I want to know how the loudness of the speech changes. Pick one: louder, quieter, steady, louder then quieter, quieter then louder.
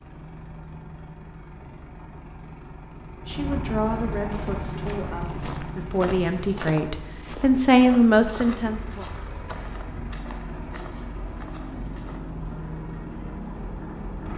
quieter then louder.